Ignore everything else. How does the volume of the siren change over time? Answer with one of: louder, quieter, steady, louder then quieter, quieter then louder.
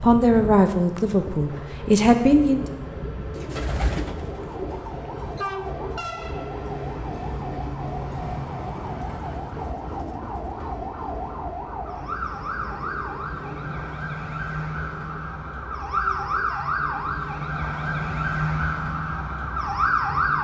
louder.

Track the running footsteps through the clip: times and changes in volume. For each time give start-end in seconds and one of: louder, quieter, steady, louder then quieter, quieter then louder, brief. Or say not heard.
not heard.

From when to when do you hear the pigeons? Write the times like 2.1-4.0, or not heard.
3.3-4.8.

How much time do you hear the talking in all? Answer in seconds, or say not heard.
3 s.